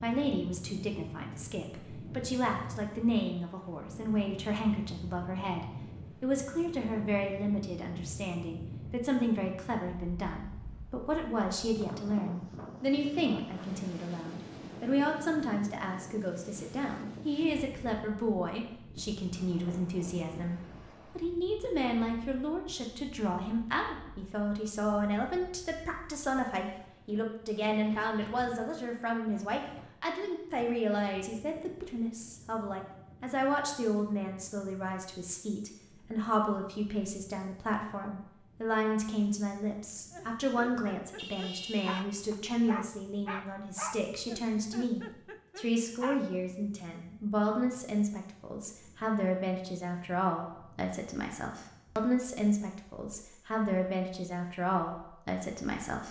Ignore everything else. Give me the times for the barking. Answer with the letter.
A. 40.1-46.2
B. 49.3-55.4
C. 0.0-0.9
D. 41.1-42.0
A.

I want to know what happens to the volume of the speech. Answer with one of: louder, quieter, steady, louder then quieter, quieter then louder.
steady.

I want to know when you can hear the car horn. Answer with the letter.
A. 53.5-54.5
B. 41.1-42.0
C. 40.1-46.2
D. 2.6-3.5
B.